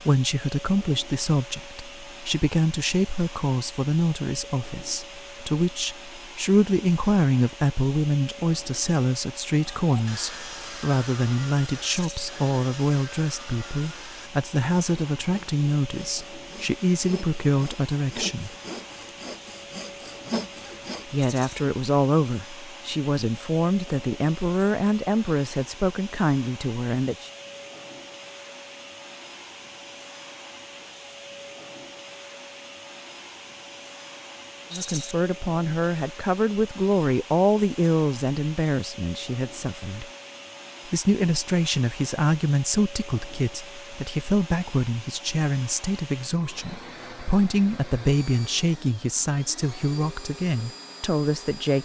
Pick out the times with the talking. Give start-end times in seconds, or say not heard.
0.1-18.5, 21.1-27.3, 34.7-40.0, 40.9-51.8.